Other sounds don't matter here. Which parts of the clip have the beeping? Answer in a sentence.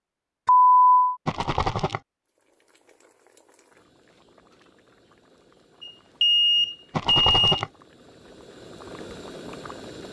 You can hear the beeping from 0.5 to 1.1 s and from 5.8 to 7.5 s.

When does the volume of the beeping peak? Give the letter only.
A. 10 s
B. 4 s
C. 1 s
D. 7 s
C.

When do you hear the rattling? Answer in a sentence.
You can hear the rattling from 1.2 to 2.0 s and from 6.9 to 7.7 s.